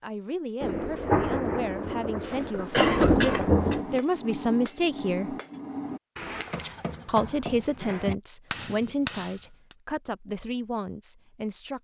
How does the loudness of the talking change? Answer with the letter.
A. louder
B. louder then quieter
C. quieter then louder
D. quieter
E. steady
B.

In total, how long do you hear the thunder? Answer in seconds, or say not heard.
3 s.